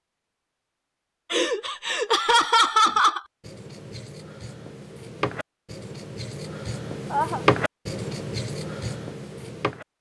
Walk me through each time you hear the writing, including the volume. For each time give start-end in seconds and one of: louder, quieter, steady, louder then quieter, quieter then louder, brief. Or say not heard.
2.9-9.8 louder then quieter.